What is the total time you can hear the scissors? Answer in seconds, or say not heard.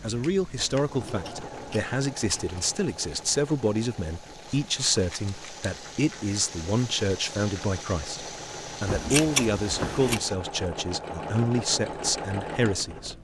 4 s.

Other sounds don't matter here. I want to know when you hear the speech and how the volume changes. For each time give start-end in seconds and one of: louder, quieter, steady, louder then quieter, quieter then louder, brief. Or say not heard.
0.0-13.2 steady.